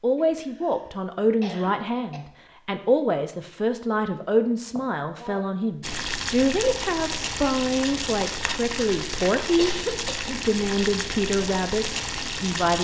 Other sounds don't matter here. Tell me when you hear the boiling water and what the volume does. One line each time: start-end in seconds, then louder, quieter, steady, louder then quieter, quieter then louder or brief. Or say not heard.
5.8-12.7 steady.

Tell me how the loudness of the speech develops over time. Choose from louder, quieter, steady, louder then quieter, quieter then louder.
steady.